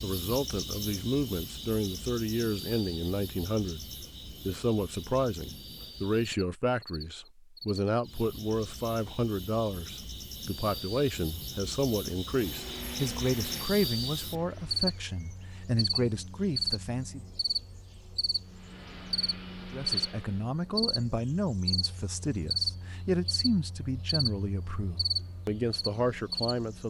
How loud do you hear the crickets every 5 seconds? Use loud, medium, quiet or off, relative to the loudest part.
medium, medium, loud, loud, loud, loud.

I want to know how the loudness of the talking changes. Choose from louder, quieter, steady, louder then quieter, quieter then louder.
steady.